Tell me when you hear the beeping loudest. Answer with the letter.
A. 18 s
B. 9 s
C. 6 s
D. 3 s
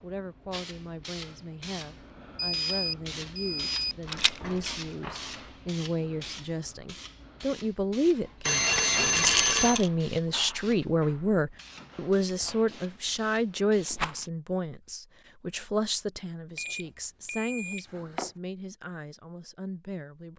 B.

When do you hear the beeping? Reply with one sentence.
The beeping can be heard from 2.4 to 4.0 s, from 8.4 to 9.8 s and from 16.6 to 18.3 s.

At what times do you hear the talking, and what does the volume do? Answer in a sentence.
The talking can be heard from 0.0 to 20.3 s, getting louder then quieter.